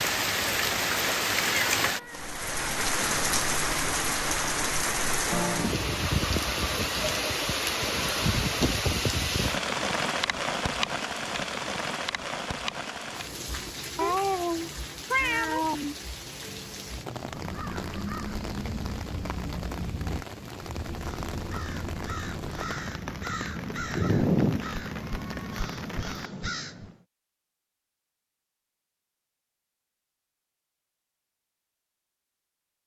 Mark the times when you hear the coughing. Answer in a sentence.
The coughing can't be heard in this clip.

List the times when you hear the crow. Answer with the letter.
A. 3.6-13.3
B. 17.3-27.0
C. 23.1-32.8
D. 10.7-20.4
B.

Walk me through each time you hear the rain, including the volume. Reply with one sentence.
The rain can be heard from 0.0 to 26.3 s, getting quieter.